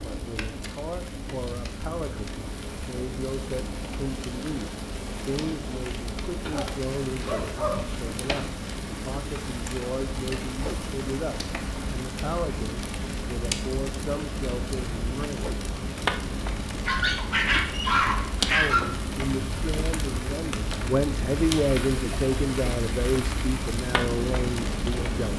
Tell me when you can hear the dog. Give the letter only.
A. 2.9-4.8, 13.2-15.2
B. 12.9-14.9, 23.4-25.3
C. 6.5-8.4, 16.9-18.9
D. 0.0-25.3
C.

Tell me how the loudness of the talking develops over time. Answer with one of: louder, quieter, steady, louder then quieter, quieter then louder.
louder.